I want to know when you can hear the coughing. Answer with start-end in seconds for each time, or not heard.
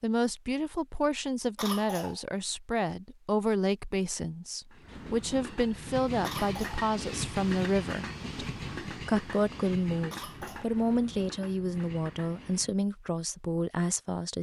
1.6-2.2, 6.2-6.8, 10.1-10.8.